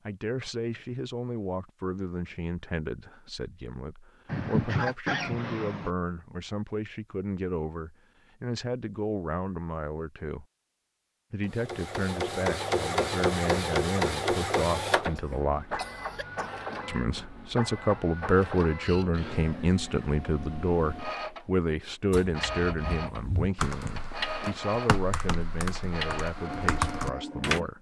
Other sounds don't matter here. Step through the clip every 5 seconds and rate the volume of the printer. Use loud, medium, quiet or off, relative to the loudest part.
off, off, loud, medium, medium, medium.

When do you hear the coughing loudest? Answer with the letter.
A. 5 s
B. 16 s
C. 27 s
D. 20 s
A.